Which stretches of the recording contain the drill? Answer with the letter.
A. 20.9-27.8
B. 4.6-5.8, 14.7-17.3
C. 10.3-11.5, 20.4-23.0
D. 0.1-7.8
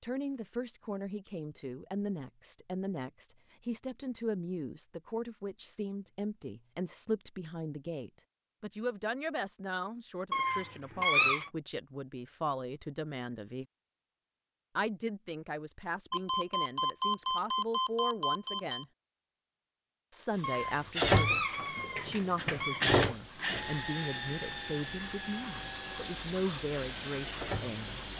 A.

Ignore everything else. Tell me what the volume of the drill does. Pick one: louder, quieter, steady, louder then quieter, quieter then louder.
louder then quieter.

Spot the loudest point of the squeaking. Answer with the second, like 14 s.
11 s.